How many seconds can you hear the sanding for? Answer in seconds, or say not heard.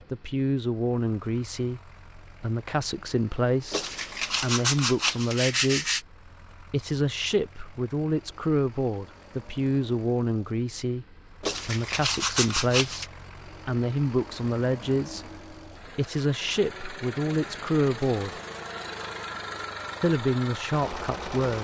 4 s.